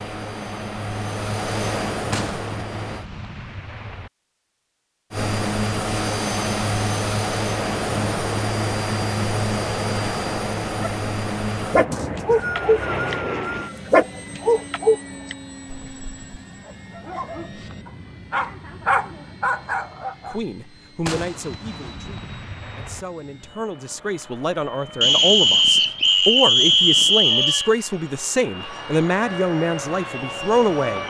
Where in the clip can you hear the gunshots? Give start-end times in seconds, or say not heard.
2.1-4.1, 21.1-23.1.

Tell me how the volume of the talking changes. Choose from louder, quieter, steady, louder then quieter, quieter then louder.
louder.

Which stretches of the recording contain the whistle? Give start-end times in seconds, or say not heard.
11.9-13.8, 25.0-27.7.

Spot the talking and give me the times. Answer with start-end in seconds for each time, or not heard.
20.3-31.0.